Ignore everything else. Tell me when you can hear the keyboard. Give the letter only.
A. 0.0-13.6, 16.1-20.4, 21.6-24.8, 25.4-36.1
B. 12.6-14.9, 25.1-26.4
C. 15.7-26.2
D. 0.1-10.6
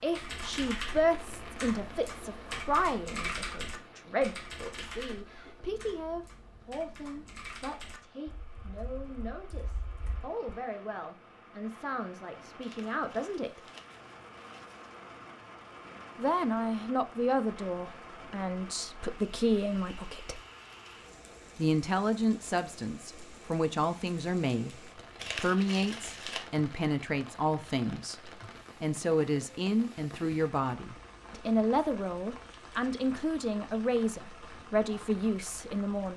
D.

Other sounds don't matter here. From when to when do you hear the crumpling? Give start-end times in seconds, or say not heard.
12.6-14.9, 25.1-26.4.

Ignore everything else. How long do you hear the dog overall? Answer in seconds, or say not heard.
not heard.